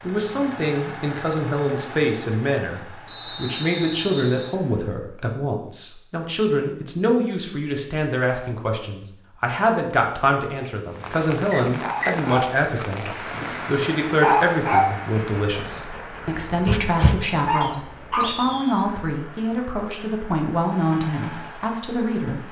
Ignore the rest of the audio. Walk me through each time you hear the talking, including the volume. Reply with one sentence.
You can hear the talking from 0.0 to 22.4 s, at a steady volume.